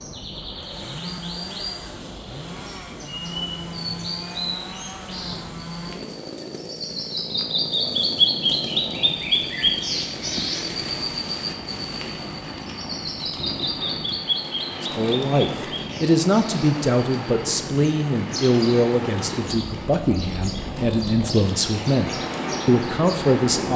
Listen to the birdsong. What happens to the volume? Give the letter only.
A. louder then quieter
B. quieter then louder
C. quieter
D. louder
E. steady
A.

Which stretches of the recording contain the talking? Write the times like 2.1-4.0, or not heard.
14.8-23.7.